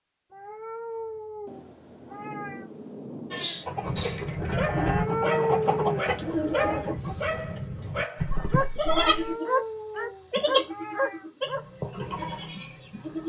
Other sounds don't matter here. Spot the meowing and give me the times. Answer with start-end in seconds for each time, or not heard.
0.3-2.7, 4.8-6.8, 9.1-11.2.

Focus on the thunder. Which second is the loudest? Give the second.
3 s.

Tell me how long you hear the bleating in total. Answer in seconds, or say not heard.
6 s.